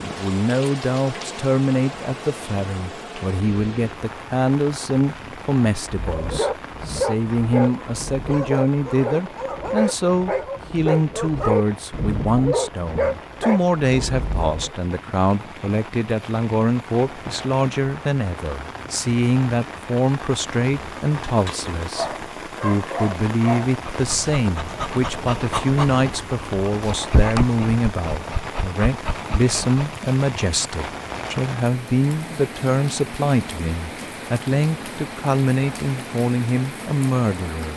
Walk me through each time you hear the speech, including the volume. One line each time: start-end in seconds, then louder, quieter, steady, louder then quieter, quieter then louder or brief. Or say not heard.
0.0-37.7 steady.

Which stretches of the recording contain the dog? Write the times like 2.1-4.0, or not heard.
5.8-14.7, 21.2-29.8.